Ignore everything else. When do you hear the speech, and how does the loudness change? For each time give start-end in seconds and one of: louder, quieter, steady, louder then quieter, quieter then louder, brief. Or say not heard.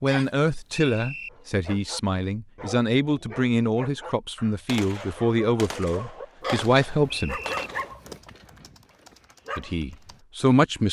0.0-7.4 steady
9.6-10.8 brief.